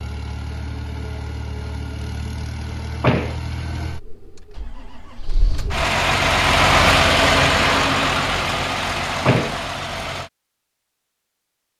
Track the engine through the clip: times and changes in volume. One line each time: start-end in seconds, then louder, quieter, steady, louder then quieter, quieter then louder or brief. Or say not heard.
0.0-10.3 louder then quieter.